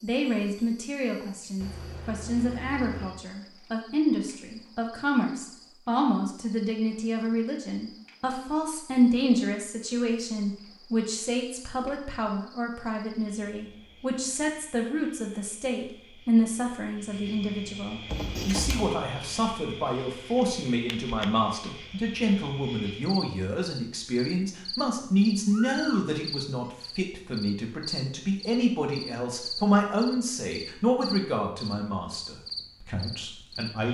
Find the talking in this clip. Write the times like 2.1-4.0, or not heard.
0.0-33.9.